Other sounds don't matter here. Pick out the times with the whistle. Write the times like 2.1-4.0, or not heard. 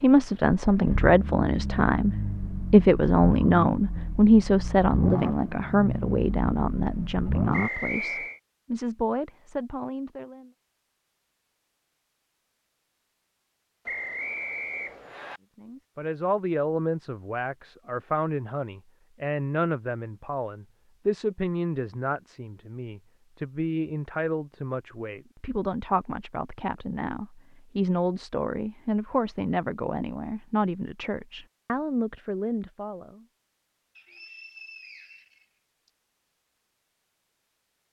7.5-8.4, 13.8-15.4, 34.0-35.9.